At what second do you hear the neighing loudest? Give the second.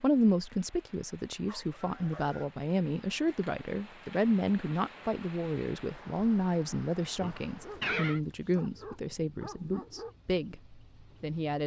8 s.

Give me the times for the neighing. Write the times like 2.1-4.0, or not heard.
1.6-2.5, 7.2-8.2.